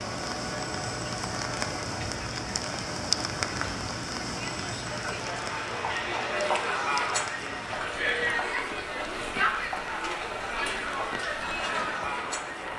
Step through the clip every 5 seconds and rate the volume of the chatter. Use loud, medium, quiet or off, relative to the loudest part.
medium, loud, loud.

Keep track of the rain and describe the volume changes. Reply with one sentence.
The volume of the rain goes down.